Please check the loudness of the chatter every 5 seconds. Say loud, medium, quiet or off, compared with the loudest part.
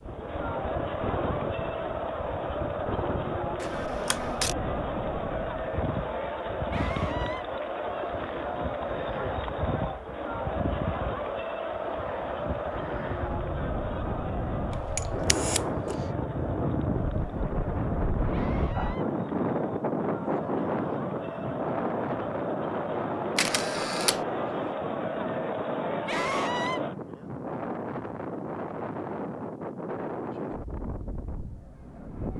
loud, loud, loud, medium, loud, loud, off.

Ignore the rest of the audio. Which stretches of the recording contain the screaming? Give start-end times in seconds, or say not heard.
6.7-7.5, 18.3-19.1, 26.1-26.8.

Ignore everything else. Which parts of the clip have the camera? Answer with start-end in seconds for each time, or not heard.
3.6-4.5, 14.7-15.9, 23.4-24.6.